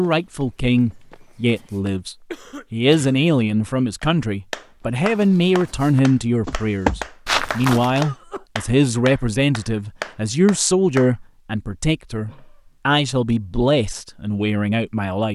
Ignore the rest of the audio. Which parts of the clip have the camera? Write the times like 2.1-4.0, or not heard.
not heard.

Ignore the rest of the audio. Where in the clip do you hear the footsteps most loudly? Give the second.
7 s.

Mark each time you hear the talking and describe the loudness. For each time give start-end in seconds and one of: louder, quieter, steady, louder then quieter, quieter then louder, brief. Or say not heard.
0.0-15.3 steady.